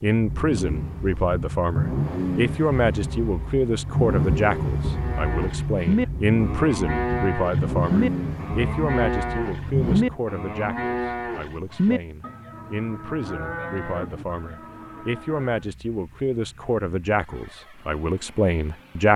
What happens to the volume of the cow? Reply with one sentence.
The volume of the cow goes down.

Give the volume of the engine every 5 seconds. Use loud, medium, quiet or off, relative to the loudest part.
loud, loud, quiet, quiet.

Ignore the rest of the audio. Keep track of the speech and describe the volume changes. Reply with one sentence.
The volume of the speech goes down, then up.